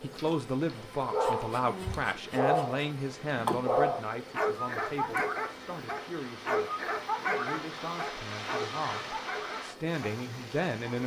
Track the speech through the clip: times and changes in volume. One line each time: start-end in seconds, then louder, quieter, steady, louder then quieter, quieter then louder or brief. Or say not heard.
0.0-11.0 quieter then louder.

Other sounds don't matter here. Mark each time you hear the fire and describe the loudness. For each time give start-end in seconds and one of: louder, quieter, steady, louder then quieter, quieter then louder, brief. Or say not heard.
not heard.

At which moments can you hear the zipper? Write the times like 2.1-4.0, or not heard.
not heard.